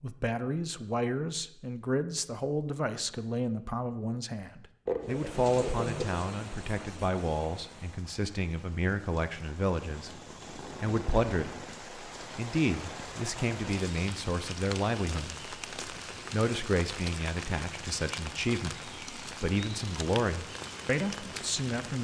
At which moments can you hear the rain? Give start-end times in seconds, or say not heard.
5.0-21.9.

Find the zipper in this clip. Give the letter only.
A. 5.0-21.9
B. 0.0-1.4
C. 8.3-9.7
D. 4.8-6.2
D.